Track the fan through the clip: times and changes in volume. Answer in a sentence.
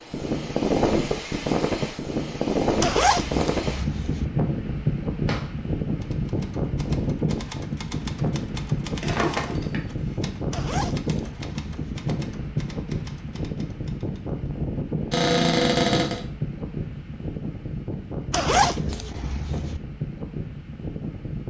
You can hear the fan from 0.0 to 21.4 s, getting quieter.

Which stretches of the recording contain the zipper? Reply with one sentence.
You can hear the zipper from 2.8 to 4.2 s, from 10.5 to 12.0 s and from 18.3 to 19.8 s.